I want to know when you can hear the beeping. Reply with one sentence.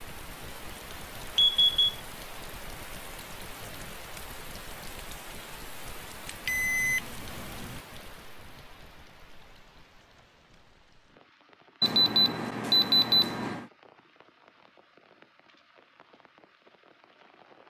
You can hear the beeping from 1.4 to 1.9 s, from 6.5 to 7.8 s and from 11.8 to 13.7 s.